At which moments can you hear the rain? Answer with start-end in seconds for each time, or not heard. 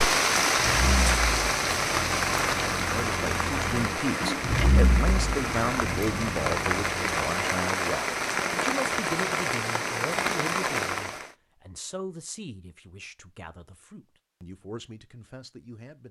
0.0-11.3.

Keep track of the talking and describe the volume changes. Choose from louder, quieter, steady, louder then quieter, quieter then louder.
quieter.